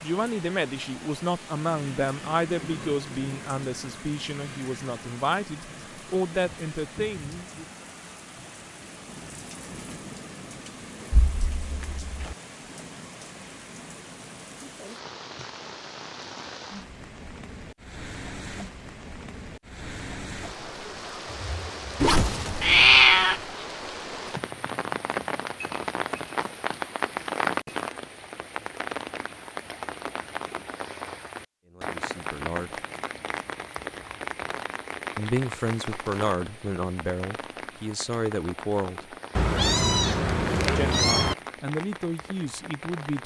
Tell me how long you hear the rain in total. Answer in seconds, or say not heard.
43 s.